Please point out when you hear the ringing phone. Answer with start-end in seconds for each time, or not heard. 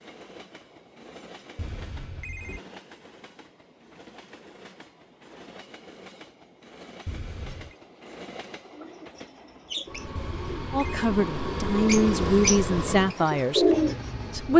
1.6-2.6, 7.0-7.8, 10.2-11.1.